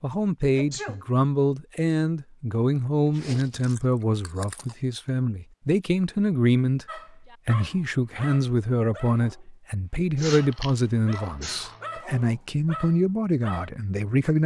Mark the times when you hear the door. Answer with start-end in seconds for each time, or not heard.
not heard.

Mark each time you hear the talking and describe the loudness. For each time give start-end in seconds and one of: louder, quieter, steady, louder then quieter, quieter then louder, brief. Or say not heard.
0.0-14.4 steady.